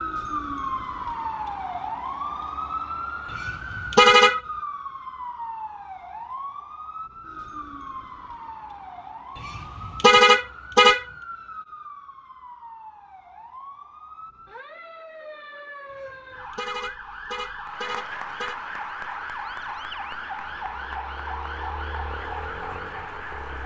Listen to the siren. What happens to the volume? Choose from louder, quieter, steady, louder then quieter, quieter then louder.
quieter then louder.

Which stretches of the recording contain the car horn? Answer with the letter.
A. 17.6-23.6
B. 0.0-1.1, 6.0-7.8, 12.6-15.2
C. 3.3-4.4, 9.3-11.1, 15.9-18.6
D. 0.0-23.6
C.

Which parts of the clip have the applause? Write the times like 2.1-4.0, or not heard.
17.6-23.6.